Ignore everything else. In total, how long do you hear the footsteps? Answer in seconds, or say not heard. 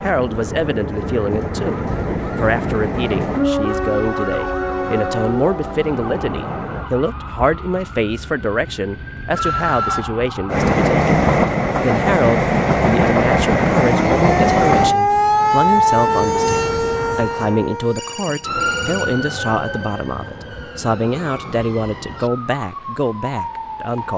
not heard.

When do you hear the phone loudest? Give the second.
10 s.